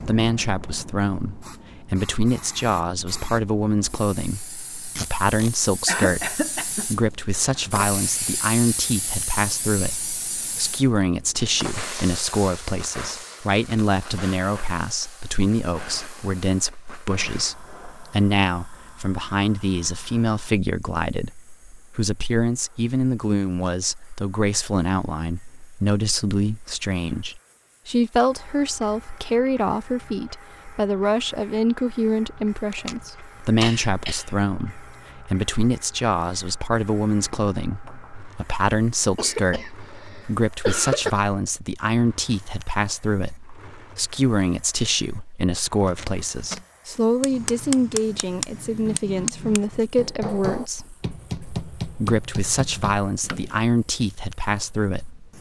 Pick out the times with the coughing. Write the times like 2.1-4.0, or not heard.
5.8-6.9, 33.6-34.4, 39.1-41.1.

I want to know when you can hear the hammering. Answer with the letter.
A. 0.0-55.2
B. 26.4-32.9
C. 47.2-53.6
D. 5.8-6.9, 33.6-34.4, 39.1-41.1
C.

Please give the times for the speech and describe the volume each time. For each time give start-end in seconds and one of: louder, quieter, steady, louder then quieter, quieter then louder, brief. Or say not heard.
0.0-55.2 steady.